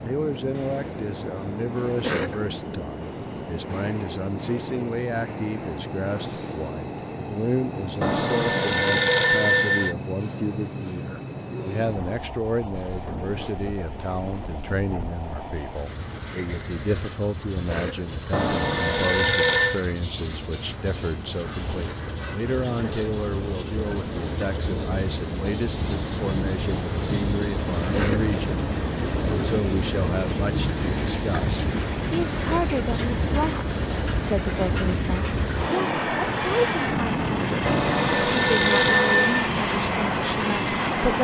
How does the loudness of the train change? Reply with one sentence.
The loudness of the train goes up.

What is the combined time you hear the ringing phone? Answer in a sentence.
The ringing phone can be heard for 5 seconds in total.